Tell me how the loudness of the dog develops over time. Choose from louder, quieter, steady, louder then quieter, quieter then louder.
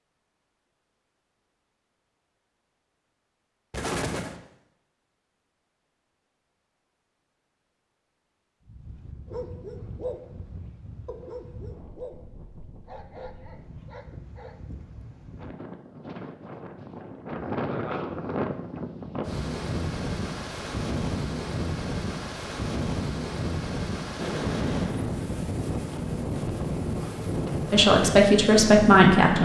quieter.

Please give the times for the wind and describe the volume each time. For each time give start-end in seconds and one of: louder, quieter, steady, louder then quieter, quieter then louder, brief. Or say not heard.
8.6-29.4 louder.